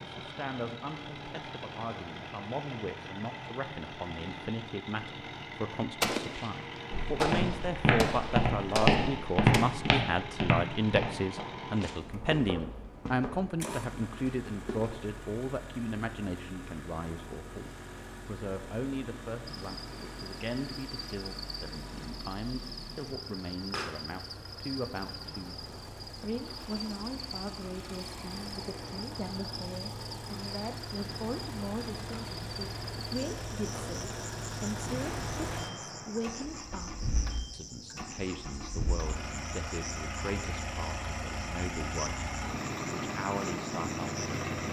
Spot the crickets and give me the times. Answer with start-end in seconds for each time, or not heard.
19.4-44.6.